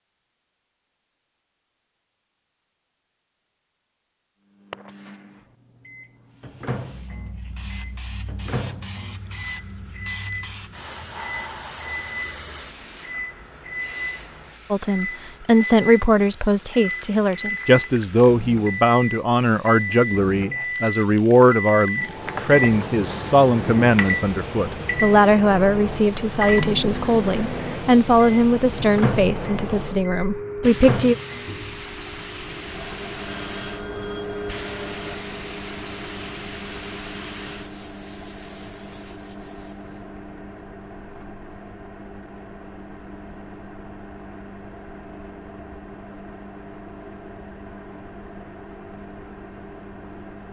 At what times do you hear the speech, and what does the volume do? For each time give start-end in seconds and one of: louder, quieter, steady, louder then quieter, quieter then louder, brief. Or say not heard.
14.7-31.1 steady.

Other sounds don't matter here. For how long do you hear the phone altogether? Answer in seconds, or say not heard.
2 s.